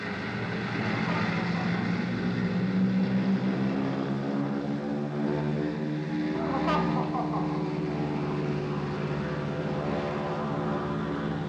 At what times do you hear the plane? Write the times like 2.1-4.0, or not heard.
0.0-11.4.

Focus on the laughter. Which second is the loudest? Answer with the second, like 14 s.
7 s.